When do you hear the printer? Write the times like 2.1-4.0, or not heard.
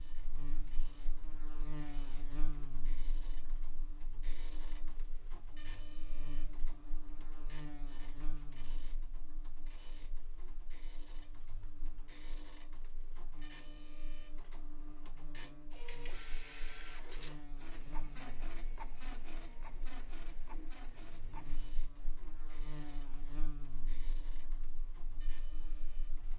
0.0-26.3.